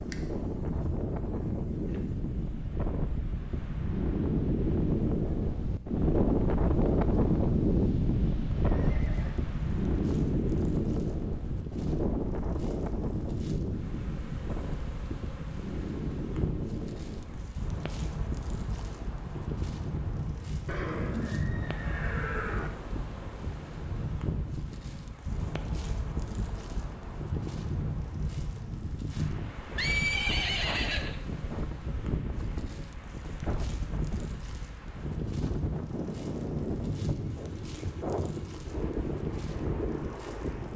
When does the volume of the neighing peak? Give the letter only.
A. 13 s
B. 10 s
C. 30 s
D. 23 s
C.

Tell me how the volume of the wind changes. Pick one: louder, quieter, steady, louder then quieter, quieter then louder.
quieter.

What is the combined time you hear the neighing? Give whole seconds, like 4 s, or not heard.
4 s.